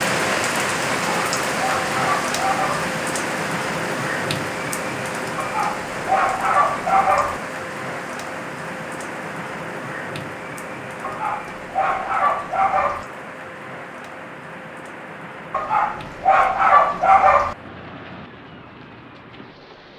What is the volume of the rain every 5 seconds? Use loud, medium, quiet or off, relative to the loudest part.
loud, medium, medium, quiet.